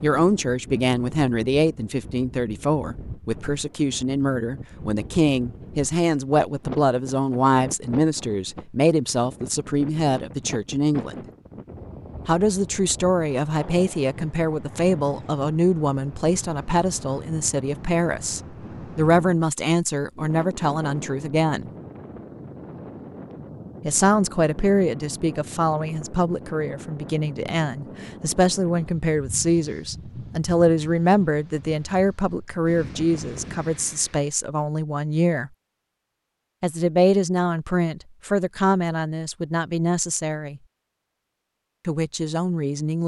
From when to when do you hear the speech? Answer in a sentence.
You can hear the speech from 0.0 to 11.2 s, from 12.2 to 21.7 s, from 23.8 to 35.5 s, from 36.6 to 40.6 s and from 41.9 to 43.0 s.